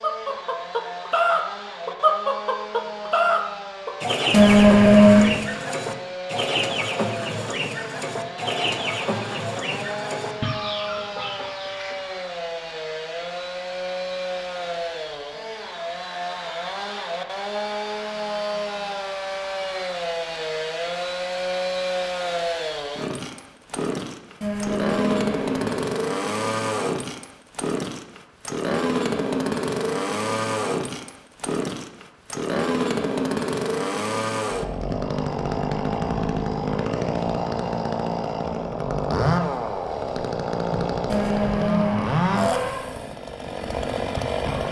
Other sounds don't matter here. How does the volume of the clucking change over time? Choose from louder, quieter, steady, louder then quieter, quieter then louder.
quieter.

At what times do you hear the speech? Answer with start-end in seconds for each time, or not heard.
not heard.